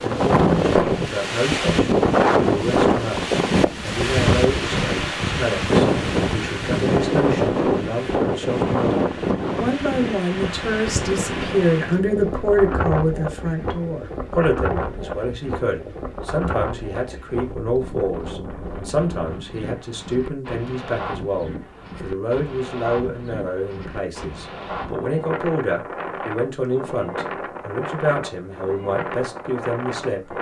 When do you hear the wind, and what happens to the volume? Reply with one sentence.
The wind can be heard from 0.0 to 30.3 s, getting quieter.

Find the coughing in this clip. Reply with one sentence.
You can't hear the coughing here.